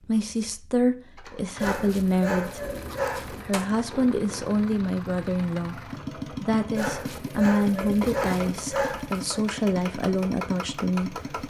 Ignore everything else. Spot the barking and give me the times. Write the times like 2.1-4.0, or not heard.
1.6-3.5, 6.8-9.4.